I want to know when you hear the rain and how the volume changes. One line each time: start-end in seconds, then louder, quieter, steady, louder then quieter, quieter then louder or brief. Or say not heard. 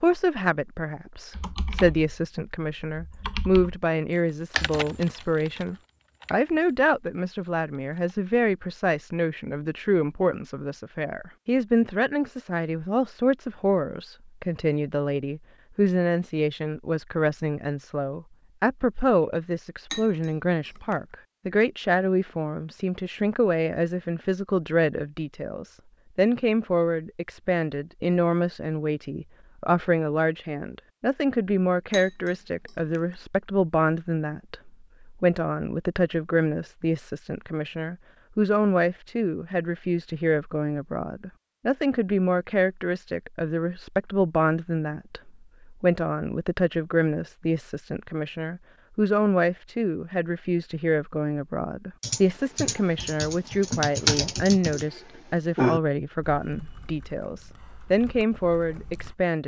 not heard.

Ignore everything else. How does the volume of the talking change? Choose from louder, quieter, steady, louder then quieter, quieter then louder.
steady.